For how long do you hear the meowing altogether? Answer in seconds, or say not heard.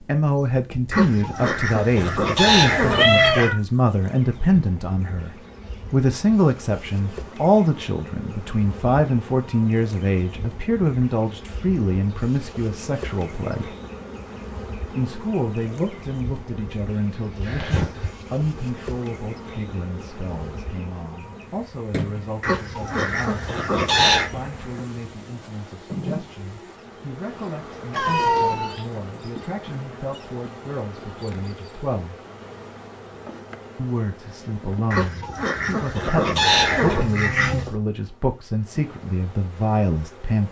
2 s.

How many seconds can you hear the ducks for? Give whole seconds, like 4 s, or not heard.
7 s.